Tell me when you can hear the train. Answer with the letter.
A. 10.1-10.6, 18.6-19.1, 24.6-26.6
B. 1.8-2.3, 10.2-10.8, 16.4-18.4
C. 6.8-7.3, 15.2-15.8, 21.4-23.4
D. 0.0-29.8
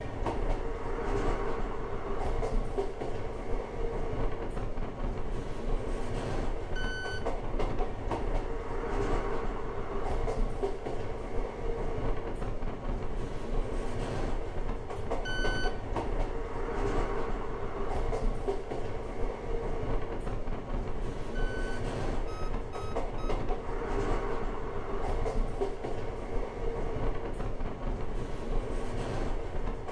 D.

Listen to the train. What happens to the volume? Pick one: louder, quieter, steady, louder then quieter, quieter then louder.
steady.